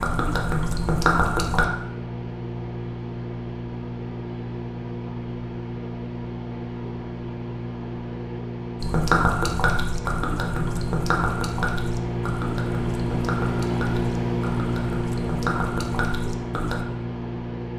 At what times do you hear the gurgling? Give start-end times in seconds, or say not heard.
0.0-1.6, 8.8-16.9.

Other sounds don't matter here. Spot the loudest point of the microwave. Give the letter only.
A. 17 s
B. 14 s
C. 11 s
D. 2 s
B.